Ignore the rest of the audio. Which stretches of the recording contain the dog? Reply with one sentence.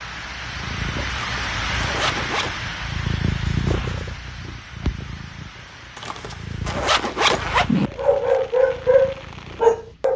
You can hear the dog from 8.0 to 10.1 s.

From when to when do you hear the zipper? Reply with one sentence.
The zipper can be heard from 1.1 to 2.5 s and from 6.0 to 7.9 s.